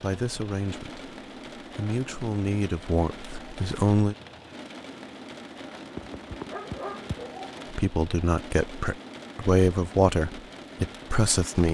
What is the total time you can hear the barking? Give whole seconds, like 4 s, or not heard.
2 s.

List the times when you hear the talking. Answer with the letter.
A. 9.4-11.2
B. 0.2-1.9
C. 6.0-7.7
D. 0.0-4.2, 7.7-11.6
D.